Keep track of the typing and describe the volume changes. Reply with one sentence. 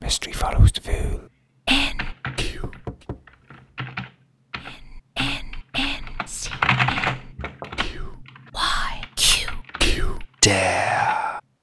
The volume of the typing goes up, then down.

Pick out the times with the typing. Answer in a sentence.
The typing can be heard from 1.8 to 11.2 s.